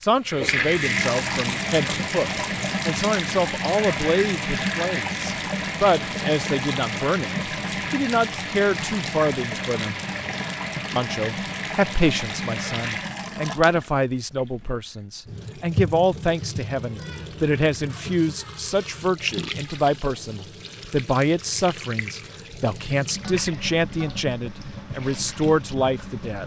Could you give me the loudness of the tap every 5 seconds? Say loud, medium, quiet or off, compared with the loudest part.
loud, loud, medium, medium, medium, medium.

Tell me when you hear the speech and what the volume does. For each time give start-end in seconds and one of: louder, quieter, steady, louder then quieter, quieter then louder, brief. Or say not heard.
0.0-9.9 steady
10.9-26.4 steady.